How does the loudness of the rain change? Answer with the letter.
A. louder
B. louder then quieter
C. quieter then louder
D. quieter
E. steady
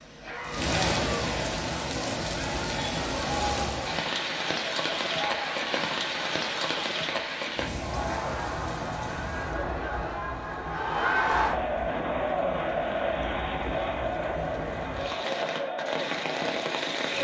C.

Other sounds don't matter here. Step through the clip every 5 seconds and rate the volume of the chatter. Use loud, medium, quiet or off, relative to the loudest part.
medium, medium, loud, medium.